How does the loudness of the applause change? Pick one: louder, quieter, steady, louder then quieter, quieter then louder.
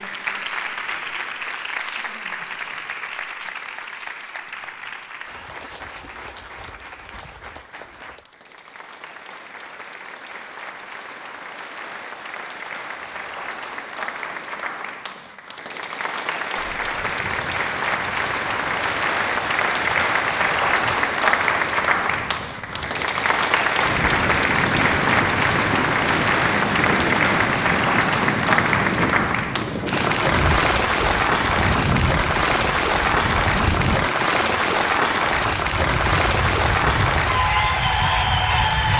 louder.